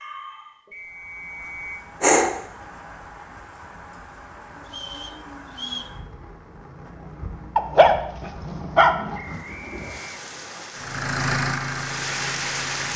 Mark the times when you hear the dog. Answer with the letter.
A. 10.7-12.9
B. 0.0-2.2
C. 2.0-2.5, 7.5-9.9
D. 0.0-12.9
C.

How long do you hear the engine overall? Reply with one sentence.
The engine can be heard for 2 seconds in total.